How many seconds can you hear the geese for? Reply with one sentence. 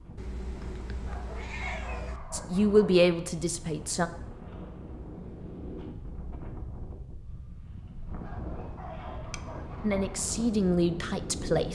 The geese can't be heard in this clip.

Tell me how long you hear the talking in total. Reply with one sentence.
The talking can be heard for 4 seconds in total.